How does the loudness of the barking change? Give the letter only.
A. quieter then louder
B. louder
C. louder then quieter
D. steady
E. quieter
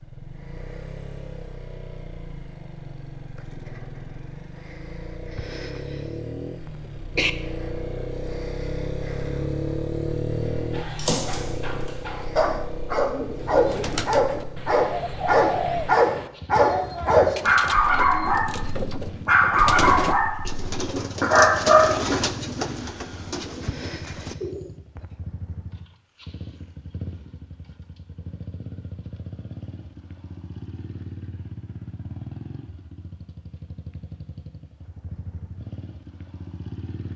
B.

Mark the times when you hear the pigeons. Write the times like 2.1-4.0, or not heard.
12.9-24.7.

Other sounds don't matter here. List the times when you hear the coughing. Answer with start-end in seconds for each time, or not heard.
5.3-6.0, 6.7-7.3, 23.6-25.1.